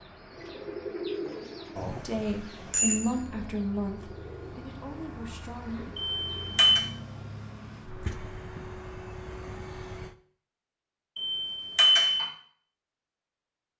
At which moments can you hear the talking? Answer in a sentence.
The talking can be heard from 2.0 to 5.9 s.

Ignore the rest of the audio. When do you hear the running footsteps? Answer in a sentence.
The running footsteps can't be heard in this clip.